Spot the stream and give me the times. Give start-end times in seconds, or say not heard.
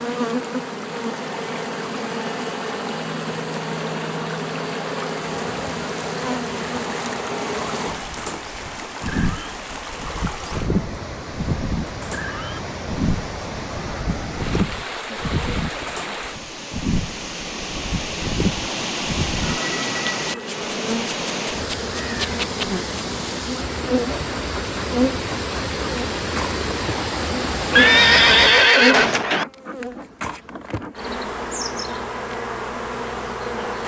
0.0-28.7.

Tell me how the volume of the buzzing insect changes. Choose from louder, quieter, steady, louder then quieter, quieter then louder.
steady.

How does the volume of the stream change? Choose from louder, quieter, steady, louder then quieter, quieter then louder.
louder.